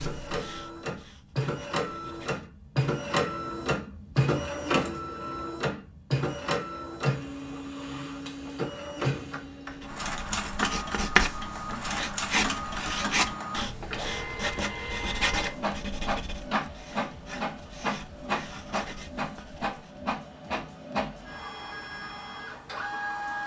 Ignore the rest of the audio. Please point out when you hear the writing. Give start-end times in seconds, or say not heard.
0.0-2.5, 9.8-20.1.